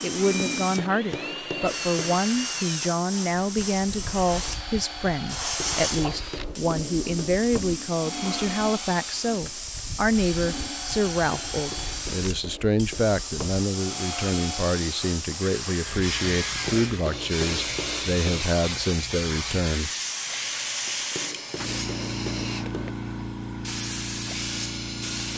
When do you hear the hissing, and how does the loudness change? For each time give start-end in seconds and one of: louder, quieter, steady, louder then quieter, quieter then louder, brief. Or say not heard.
0.0-25.3 steady.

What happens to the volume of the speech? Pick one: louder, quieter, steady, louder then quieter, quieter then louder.
steady.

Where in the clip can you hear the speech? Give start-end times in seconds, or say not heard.
0.0-19.9.